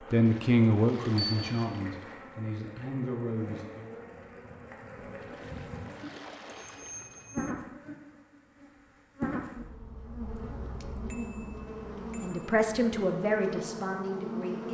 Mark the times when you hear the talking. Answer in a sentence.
You can hear the talking from 0.1 to 3.9 s and from 12.2 to 14.7 s.